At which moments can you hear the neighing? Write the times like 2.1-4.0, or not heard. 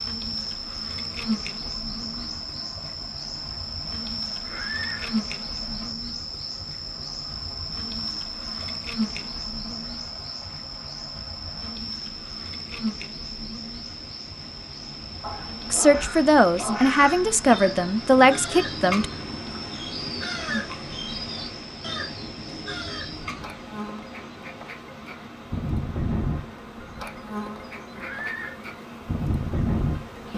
4.4-5.2, 27.9-28.6.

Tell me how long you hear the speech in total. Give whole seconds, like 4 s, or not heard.
3 s.